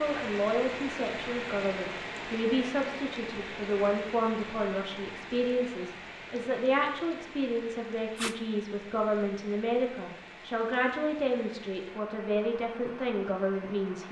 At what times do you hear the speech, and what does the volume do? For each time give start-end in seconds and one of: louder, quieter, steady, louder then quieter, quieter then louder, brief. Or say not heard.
0.0-14.0 steady.